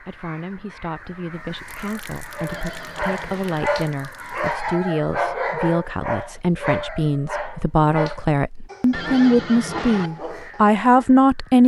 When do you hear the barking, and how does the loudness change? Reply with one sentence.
The barking can be heard from 2.4 to 11.1 s, getting quieter.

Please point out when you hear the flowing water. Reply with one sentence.
You can't hear the flowing water here.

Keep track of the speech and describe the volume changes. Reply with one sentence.
The volume of the speech goes up.